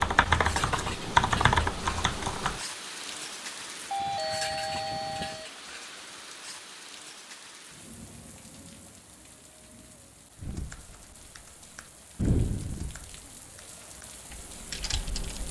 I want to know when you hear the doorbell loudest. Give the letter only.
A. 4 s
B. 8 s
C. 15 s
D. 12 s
A.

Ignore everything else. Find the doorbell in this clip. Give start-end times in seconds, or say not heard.
3.9-5.5.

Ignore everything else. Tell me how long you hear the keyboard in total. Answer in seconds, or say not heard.
8 s.